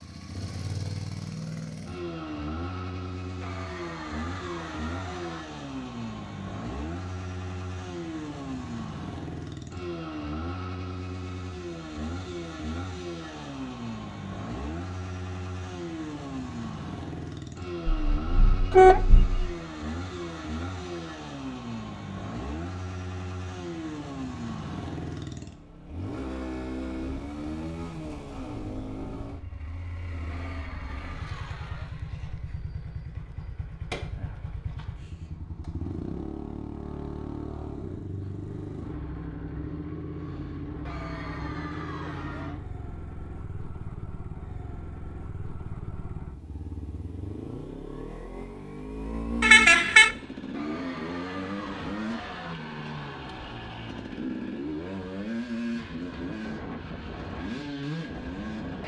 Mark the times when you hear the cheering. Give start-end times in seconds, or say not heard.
3.4-5.4, 19.1-21.1, 30.2-31.9, 40.9-42.6, 50.5-52.5.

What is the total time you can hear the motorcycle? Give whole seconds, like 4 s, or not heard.
59 s.